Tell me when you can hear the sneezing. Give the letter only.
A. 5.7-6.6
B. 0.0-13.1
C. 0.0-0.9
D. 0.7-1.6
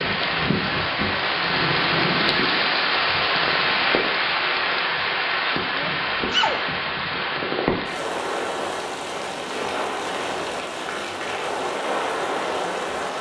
A.